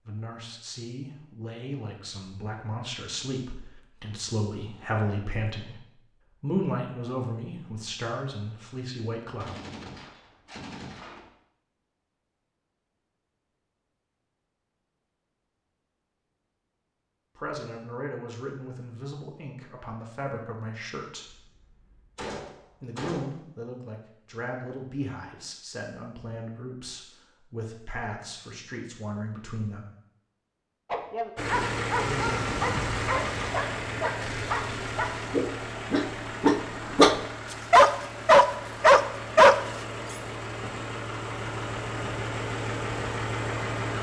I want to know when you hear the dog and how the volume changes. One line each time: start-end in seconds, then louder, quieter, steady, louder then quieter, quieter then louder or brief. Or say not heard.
30.9-39.5 louder.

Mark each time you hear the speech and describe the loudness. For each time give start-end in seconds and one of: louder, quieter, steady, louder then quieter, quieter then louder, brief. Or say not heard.
0.0-9.7 louder then quieter
17.4-21.4 steady
22.8-29.9 steady
31.9-32.5 brief.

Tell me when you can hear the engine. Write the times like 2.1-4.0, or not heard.
31.4-43.9.